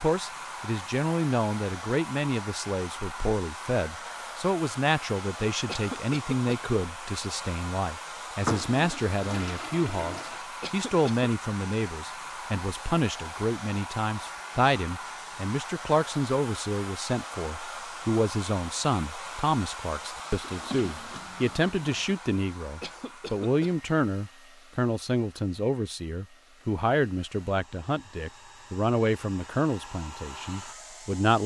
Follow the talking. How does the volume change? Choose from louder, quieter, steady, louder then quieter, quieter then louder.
steady.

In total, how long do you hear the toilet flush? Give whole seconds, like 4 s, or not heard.
4 s.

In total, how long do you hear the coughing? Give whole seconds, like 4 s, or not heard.
2 s.